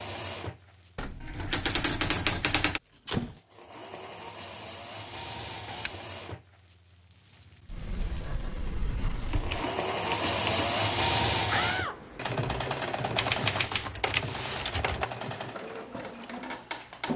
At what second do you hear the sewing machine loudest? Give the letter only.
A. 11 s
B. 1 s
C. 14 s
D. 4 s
A.